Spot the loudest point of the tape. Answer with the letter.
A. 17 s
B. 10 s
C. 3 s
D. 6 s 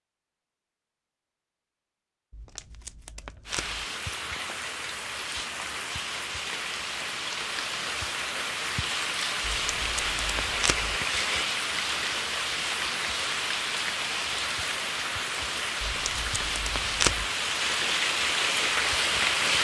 A.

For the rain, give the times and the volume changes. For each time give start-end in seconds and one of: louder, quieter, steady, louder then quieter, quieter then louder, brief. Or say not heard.
3.5-19.6 louder.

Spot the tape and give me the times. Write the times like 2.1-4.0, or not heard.
2.3-3.9, 9.4-11.0, 15.8-17.2.